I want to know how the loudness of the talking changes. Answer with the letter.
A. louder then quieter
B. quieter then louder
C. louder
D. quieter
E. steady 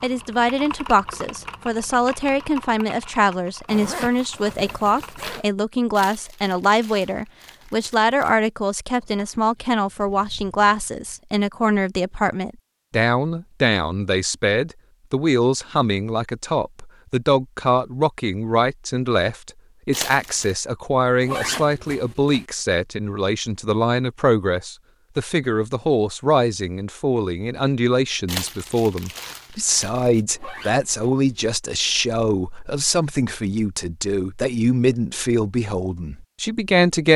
E.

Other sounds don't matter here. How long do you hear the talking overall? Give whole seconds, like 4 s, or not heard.
37 s.